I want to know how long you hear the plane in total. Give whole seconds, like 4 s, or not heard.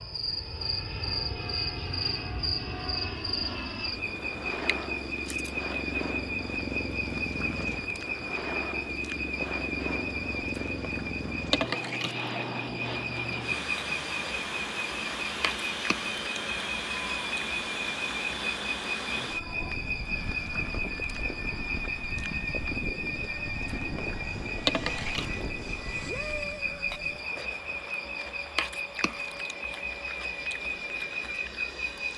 32 s.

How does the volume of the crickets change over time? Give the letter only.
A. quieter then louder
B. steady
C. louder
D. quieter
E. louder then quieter
B.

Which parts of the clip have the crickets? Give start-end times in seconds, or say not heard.
0.0-32.1.